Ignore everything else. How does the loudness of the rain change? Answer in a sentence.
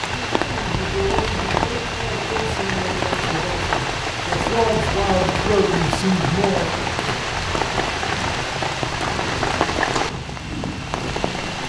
The volume of the rain stays about the same.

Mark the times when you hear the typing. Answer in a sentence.
The typing can't be heard in this clip.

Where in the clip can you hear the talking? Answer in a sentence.
The talking can be heard from 0.2 to 6.7 s.